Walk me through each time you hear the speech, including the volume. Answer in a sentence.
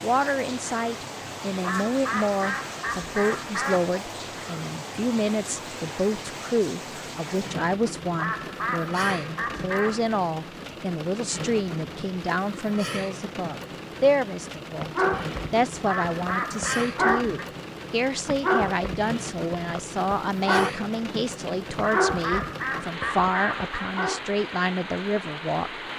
The speech can be heard from 0.0 to 25.8 s, at a steady volume.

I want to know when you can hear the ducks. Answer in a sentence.
You can hear the ducks from 1.6 to 4.0 s, from 8.2 to 10.2 s, from 15.8 to 17.4 s and from 21.8 to 23.9 s.